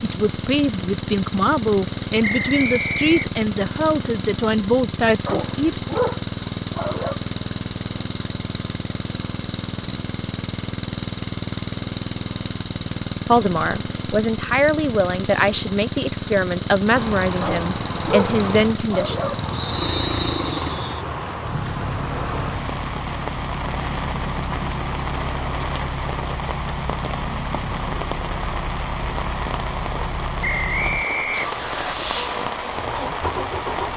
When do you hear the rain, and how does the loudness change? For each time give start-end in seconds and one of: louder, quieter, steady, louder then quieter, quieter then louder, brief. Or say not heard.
16.9-33.9 steady.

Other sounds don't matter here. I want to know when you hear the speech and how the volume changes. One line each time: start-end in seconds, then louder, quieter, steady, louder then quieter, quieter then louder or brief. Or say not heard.
0.0-5.8 steady
13.2-19.4 steady.